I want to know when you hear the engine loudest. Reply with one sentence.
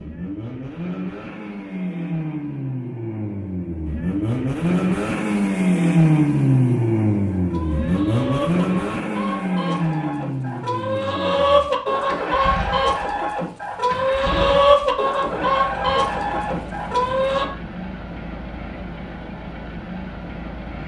The volume of the engine peaks at 6 seconds.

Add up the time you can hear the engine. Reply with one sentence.
You can hear the engine for 21 seconds altogether.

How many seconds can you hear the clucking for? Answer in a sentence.
The clucking can be heard for 10 seconds in total.